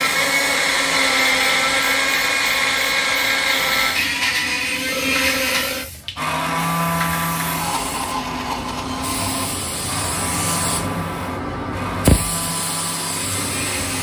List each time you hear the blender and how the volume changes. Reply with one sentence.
The blender can be heard from 0.0 to 13.9 s, getting quieter.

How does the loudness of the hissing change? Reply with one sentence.
The loudness of the hissing goes up.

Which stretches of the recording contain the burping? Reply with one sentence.
You can hear the burping from 4.8 to 5.9 s.